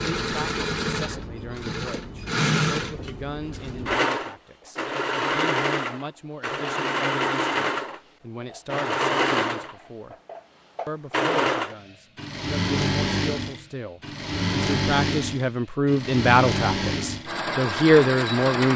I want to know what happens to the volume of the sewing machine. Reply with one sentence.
The loudness of the sewing machine stays about the same.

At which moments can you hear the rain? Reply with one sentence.
The rain can't be heard in this clip.